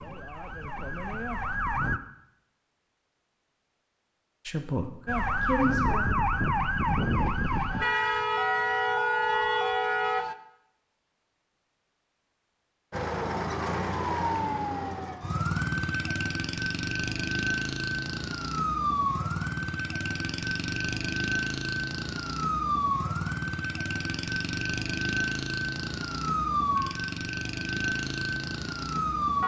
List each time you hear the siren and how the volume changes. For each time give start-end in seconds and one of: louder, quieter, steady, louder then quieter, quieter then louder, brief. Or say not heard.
0.0-2.0 brief
5.0-10.3 steady
12.9-29.4 steady.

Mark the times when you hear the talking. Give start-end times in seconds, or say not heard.
4.5-6.0.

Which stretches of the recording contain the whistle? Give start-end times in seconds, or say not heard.
not heard.